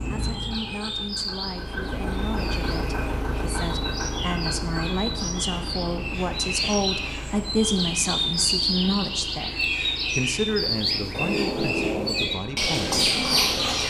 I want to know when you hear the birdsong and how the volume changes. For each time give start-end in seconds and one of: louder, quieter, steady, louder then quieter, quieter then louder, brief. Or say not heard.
0.0-13.8 louder.